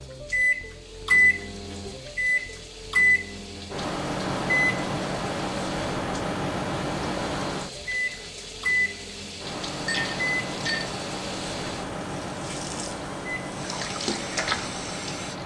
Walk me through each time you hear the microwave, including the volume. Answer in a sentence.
You can hear the microwave from 0.0 to 15.4 s, getting quieter.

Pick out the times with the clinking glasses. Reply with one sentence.
The clinking glasses can be heard from 9.8 to 10.9 s.